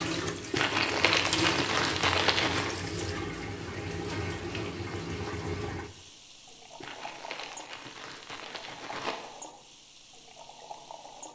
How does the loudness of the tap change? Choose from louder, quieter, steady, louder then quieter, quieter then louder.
quieter.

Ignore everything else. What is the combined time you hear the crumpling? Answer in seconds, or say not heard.
5 s.